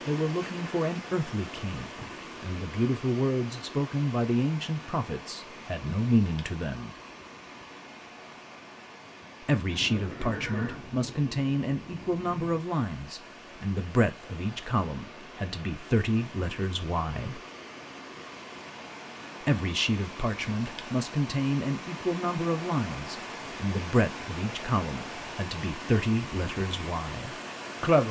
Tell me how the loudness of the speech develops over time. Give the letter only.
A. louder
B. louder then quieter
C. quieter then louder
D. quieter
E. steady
E.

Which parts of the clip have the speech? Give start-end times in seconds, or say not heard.
0.1-6.9, 9.4-17.4, 19.4-28.0.